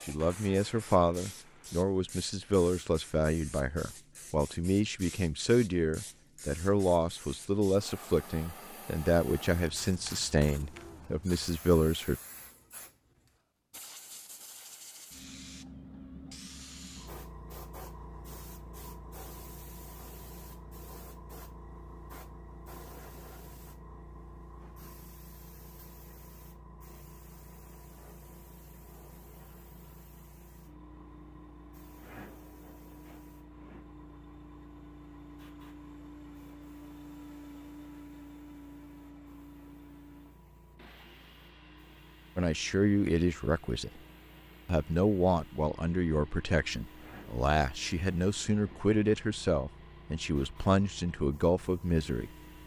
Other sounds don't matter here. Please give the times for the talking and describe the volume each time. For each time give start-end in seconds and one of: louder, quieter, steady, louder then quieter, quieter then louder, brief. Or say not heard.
0.1-12.2 steady
42.4-44.0 brief
44.6-52.3 steady.